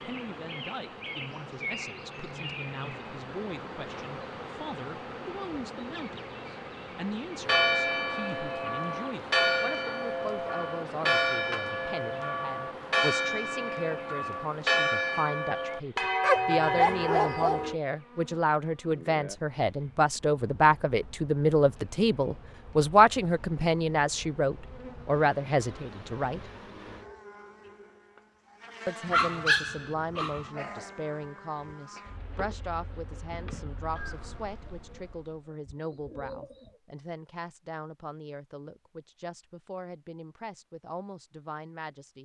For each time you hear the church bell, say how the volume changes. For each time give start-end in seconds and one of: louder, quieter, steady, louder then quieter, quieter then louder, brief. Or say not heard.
7.3-17.8 steady.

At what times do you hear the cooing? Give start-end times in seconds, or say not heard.
34.0-36.8.